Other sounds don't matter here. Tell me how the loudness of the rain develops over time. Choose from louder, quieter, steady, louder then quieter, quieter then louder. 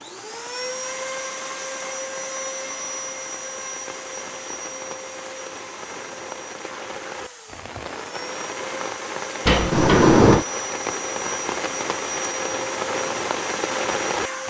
louder.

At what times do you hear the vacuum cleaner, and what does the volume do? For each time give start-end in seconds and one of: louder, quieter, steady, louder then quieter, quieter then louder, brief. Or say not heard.
0.0-14.4 quieter then louder.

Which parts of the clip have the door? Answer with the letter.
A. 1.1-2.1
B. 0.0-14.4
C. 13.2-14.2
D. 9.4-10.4
D.